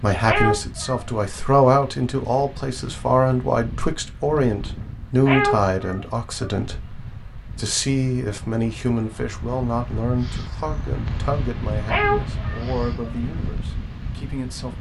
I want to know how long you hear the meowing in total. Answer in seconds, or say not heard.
3 s.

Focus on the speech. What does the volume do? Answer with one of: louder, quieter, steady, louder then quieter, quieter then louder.
quieter.